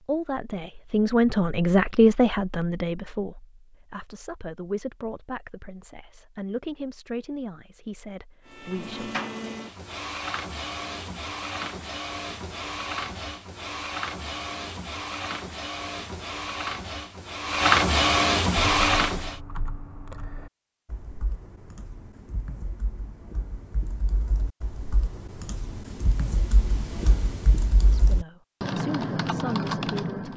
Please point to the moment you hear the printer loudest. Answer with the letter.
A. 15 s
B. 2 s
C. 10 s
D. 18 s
D.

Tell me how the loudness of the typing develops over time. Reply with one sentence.
The volume of the typing goes up.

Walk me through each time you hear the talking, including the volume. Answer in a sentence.
The talking can be heard from 0.0 to 9.2 s, getting quieter; and briefly from 27.9 to 30.3 s.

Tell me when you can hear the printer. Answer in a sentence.
The printer can be heard from 8.4 to 19.4 s.